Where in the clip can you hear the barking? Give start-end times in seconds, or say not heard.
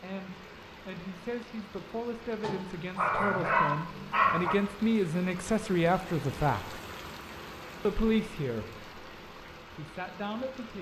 2.4-4.5.